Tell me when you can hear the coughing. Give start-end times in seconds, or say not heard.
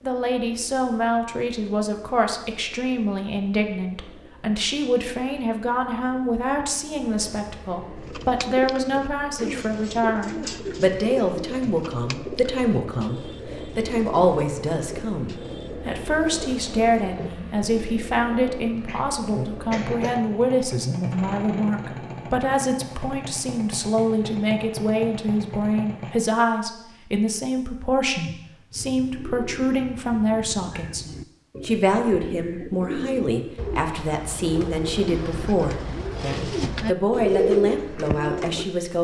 18.9-20.2.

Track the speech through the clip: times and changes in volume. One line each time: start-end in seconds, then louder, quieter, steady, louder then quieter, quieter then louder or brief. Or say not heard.
0.0-38.9 steady.